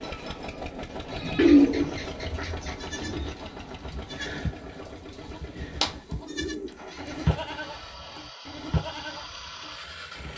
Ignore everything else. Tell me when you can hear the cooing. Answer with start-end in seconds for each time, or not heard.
1.4-3.4, 5.8-7.2.